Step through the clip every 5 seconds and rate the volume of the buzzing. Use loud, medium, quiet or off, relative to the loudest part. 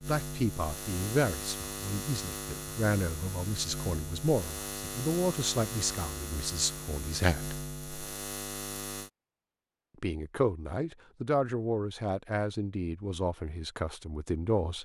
loud, loud, off.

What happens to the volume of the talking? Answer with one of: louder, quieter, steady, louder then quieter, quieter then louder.
steady.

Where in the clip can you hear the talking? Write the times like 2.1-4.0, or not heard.
0.1-7.6, 10.0-14.8.